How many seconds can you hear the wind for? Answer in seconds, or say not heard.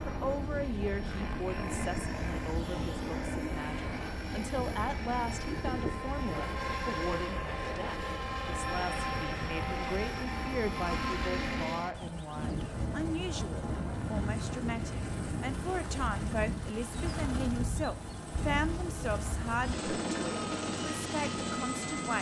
17 s.